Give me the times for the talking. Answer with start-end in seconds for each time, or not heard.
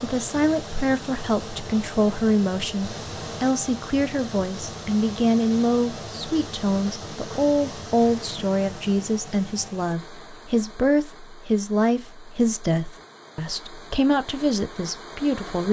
0.0-15.6.